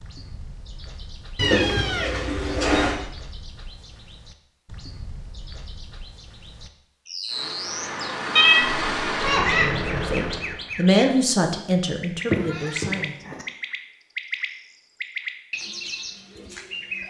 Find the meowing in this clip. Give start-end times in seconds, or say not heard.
1.4-3.0, 8.3-9.7, 12.2-13.4.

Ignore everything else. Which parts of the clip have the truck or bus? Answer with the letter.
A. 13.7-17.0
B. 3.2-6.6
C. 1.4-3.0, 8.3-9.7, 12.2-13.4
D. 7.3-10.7
D.